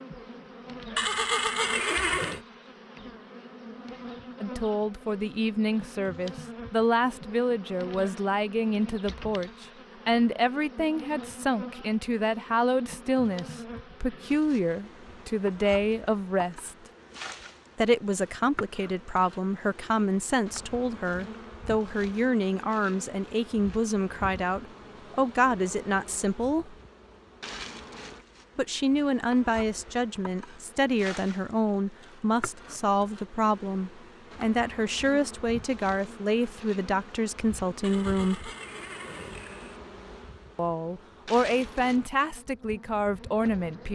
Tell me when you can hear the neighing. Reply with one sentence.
The neighing can be heard from 0.9 to 2.4 s and from 37.8 to 39.8 s.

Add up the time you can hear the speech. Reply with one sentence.
The speech can be heard for 35 seconds in total.